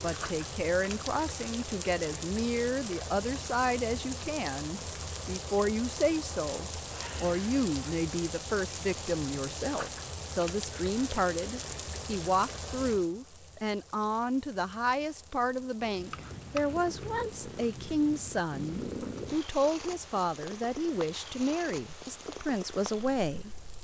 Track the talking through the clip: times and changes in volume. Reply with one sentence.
The talking can be heard from 0.0 to 23.6 s, at a steady volume.